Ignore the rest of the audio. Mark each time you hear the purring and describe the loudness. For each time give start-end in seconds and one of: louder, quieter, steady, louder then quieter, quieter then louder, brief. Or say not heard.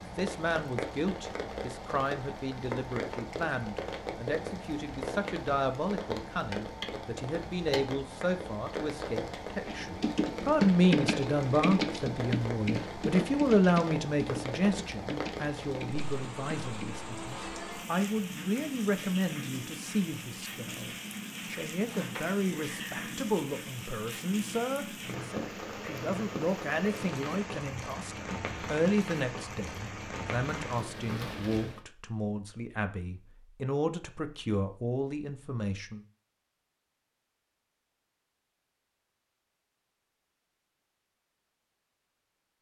not heard.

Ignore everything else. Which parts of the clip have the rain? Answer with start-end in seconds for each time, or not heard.
0.0-31.8.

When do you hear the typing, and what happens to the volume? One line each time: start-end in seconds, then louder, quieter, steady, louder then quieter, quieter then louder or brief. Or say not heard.
9.7-16.9 quieter.